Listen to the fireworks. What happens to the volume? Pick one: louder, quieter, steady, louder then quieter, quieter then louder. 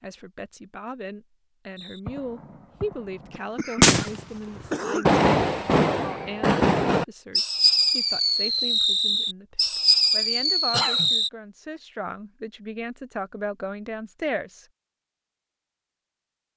steady.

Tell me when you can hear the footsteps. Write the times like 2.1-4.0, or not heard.
not heard.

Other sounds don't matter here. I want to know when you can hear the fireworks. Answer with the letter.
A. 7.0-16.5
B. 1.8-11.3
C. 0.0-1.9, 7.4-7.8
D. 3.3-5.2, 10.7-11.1
B.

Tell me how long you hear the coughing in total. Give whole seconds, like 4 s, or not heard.
2 s.